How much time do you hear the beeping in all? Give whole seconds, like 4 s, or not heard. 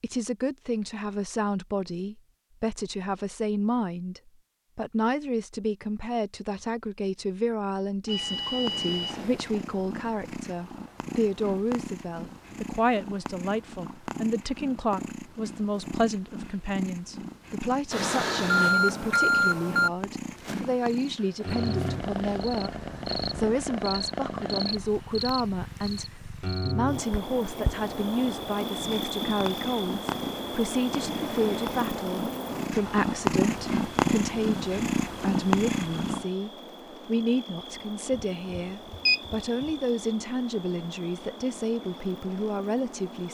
5 s.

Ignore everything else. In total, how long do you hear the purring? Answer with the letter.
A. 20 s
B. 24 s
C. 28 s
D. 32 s
C.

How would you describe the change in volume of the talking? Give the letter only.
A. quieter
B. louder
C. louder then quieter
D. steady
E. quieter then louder
D.